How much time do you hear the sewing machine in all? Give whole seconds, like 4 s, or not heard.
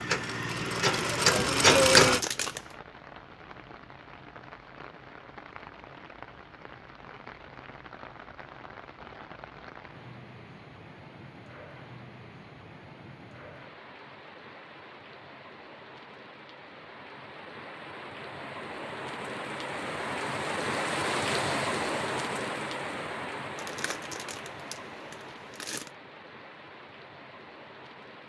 2 s.